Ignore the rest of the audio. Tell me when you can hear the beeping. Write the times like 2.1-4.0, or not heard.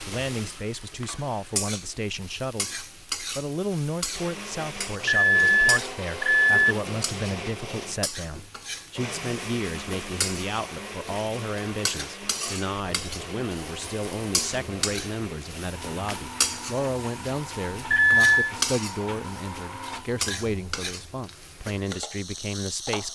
5.0-6.8, 17.9-18.6.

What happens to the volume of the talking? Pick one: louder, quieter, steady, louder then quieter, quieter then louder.
steady.